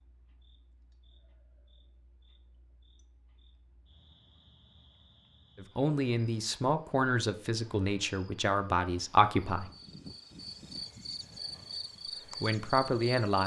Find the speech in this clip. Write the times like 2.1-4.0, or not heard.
5.5-9.7, 12.4-13.4.